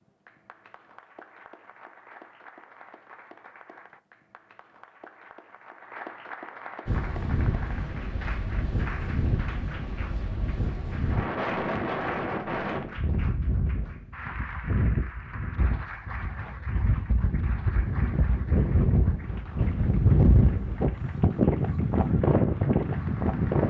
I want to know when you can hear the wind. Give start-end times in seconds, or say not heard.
6.8-23.6.